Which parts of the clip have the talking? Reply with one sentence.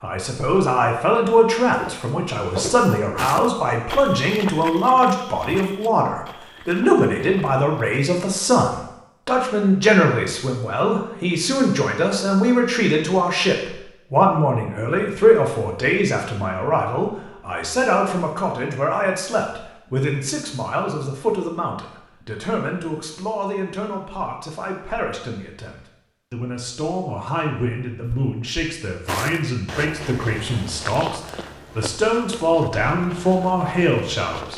You can hear the talking from 0.0 to 34.5 s.